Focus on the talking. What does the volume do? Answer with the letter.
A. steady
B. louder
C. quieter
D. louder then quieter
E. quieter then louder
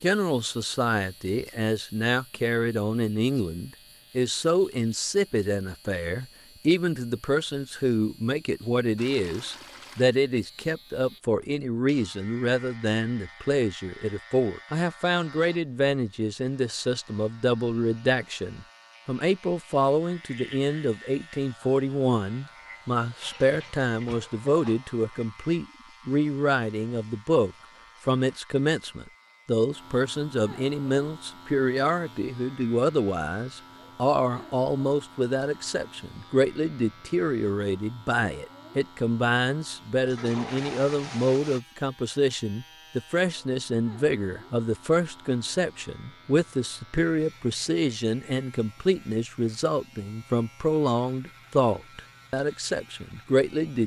A.